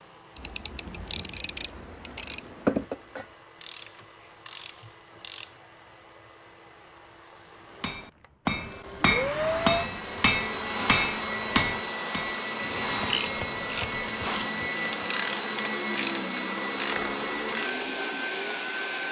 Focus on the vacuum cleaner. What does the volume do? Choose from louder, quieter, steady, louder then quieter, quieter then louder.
louder.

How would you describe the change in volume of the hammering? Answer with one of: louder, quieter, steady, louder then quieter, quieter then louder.
quieter.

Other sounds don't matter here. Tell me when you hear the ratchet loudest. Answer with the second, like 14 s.
3 s.